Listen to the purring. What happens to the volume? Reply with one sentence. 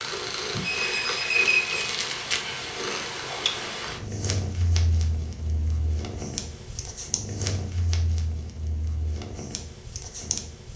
The volume of the purring goes down.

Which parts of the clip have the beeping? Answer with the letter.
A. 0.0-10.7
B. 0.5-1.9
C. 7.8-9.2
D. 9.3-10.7
B.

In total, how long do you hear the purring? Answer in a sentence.
You can hear the purring for 11 seconds altogether.